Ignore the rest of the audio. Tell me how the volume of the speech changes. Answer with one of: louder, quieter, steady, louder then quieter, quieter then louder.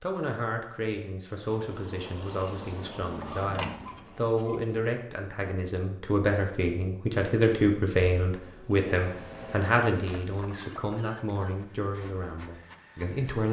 louder then quieter.